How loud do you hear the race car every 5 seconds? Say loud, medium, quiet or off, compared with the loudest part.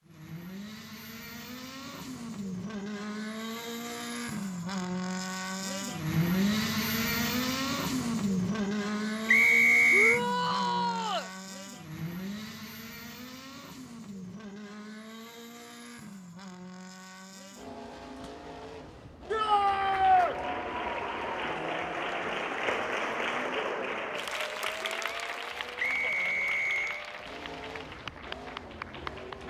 medium, loud, medium, quiet, quiet, quiet.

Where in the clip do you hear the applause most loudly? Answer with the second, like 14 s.
23 s.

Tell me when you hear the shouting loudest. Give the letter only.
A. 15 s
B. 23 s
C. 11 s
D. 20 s
D.